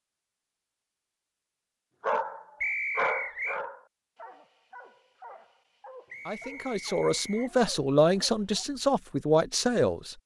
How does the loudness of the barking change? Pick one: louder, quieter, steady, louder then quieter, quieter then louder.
quieter.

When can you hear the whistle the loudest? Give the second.
3 s.